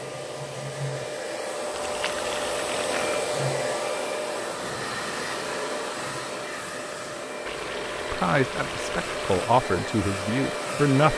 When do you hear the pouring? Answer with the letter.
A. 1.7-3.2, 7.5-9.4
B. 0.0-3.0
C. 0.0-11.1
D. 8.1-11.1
A.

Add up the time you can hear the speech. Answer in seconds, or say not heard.
3 s.